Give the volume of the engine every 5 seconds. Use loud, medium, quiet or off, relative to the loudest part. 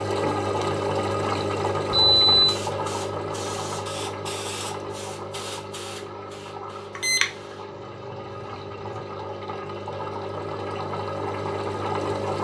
loud, medium, loud.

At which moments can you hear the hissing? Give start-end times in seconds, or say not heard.
2.2-9.1.